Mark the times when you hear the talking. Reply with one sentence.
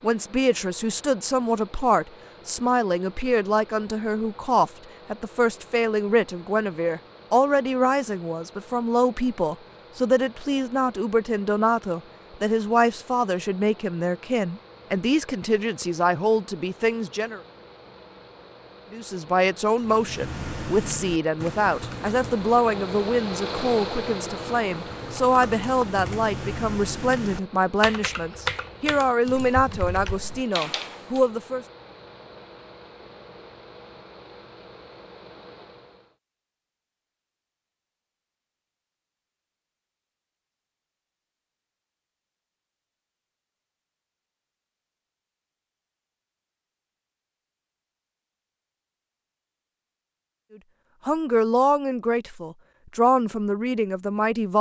You can hear the talking from 0.0 to 17.4 s, from 18.9 to 31.6 s and from 51.0 to 54.5 s.